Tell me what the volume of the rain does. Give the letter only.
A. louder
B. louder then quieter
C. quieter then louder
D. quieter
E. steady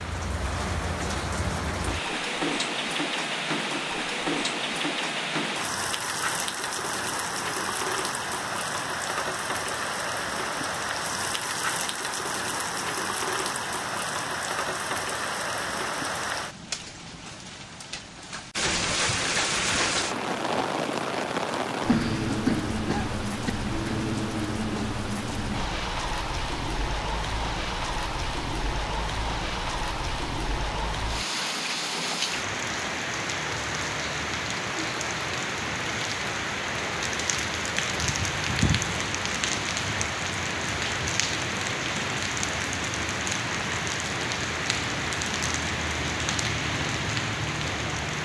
E.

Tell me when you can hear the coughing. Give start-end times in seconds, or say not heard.
21.9-23.5.